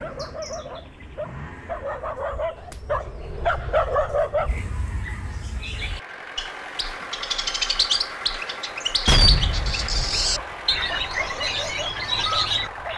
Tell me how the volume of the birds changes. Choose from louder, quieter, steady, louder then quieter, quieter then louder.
louder.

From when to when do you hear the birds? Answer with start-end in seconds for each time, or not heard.
0.0-12.9.